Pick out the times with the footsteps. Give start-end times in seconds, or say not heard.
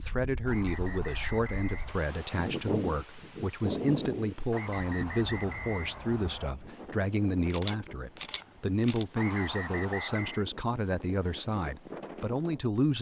not heard.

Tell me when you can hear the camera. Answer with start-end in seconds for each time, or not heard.
7.5-9.1.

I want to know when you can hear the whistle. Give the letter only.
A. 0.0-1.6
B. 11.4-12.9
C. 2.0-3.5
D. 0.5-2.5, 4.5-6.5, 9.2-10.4
D.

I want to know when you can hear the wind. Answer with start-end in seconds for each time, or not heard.
0.0-12.8.